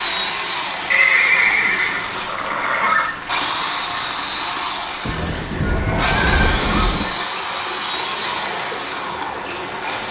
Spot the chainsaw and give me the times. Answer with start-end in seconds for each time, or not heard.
0.0-10.0.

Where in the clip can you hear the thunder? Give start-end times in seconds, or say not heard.
5.0-7.0.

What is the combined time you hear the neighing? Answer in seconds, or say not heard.
4 s.